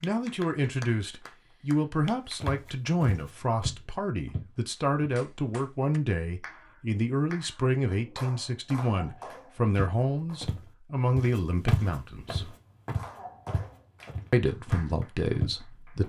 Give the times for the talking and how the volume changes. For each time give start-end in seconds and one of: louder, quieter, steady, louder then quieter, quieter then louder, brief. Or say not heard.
0.0-12.6 steady
14.3-16.0 brief.